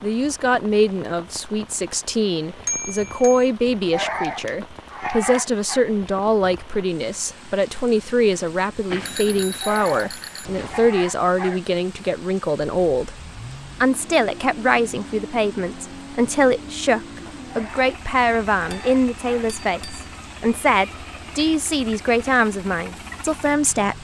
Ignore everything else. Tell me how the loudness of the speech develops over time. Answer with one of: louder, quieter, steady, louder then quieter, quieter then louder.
steady.